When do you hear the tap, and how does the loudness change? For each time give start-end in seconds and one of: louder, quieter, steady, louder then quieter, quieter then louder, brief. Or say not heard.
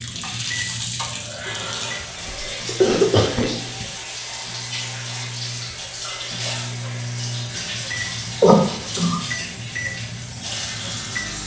0.0-11.4 steady.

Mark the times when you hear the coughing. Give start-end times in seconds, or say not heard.
2.1-3.9, 8.4-9.2.